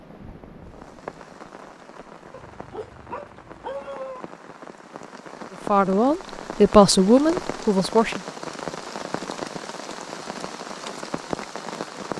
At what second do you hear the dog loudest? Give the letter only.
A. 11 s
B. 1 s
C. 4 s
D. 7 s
C.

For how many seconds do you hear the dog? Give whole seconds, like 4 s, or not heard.
2 s.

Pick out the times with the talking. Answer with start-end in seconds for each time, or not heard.
5.7-8.2.